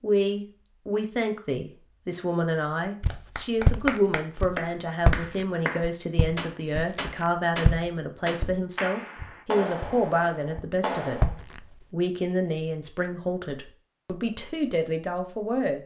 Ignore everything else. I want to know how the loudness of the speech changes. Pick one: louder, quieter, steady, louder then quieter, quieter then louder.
steady.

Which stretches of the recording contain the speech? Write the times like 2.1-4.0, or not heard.
0.0-11.2, 11.9-15.8.